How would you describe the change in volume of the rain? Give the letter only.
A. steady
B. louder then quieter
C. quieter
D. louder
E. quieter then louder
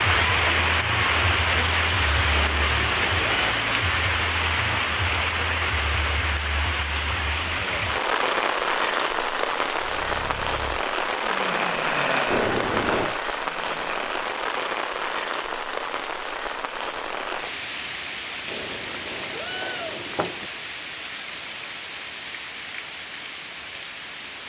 C.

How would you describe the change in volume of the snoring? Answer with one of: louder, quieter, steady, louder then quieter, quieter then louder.
louder then quieter.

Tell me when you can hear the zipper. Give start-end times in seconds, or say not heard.
not heard.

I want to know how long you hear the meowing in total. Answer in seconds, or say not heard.
4 s.